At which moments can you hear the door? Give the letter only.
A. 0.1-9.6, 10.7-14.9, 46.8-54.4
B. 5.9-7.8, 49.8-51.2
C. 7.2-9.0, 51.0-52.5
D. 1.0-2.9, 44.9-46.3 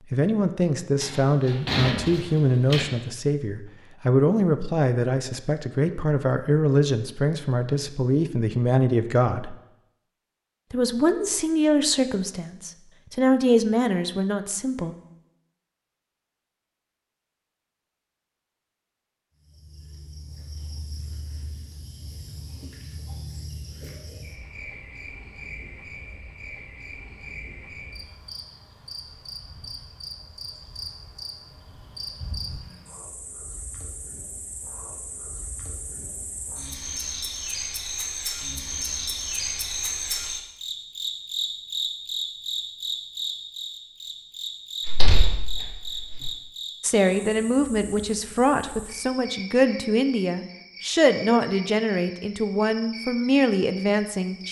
D.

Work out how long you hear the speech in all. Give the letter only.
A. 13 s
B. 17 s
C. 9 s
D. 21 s
D.